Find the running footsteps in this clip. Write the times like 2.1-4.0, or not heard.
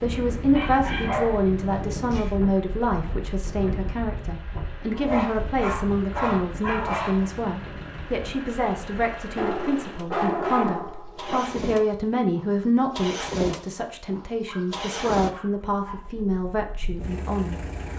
not heard.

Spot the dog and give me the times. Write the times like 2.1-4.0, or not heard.
0.6-2.3, 4.9-7.4, 9.3-11.4, 14.4-16.1.